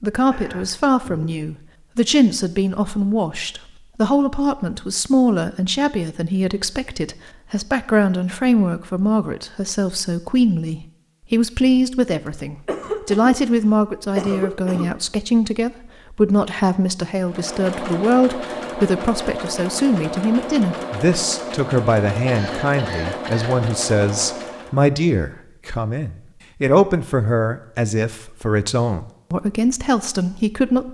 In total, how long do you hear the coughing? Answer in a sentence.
The coughing can be heard for 5 seconds in total.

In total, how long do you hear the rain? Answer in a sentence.
You can't hear the rain here.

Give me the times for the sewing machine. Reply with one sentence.
The sewing machine can be heard from 17.2 to 24.8 s.